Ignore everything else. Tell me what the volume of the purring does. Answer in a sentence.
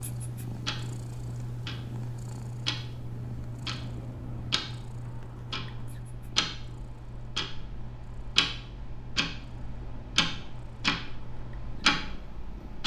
The loudness of the purring goes down.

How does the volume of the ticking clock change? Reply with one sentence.
The loudness of the ticking clock goes up.